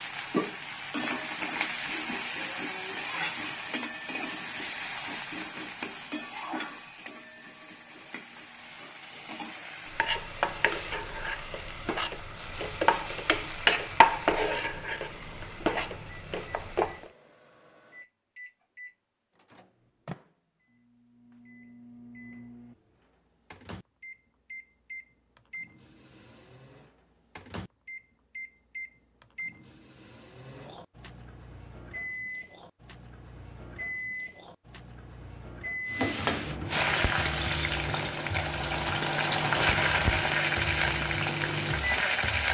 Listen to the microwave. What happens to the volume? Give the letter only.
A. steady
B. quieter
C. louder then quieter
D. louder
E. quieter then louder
D.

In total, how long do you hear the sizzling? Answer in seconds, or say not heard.
24 s.